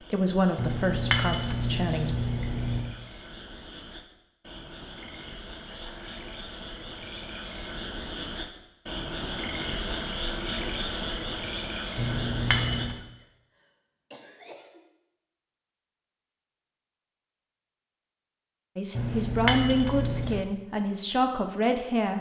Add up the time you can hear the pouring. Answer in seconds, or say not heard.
5 s.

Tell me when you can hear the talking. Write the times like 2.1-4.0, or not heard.
0.1-2.1, 18.8-22.1.